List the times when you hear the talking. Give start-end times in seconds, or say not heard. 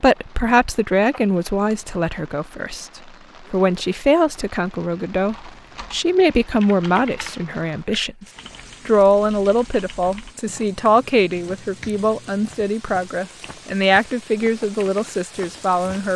0.0-2.9, 3.5-8.2, 8.8-16.1.